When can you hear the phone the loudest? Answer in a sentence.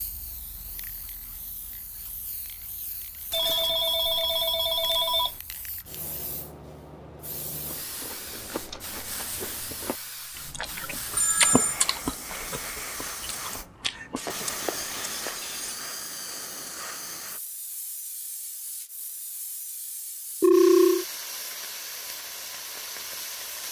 The loudest moment of the phone is at 21 seconds.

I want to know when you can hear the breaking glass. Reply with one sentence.
The breaking glass can be heard from 3.3 to 4.0 s and from 14.2 to 15.8 s.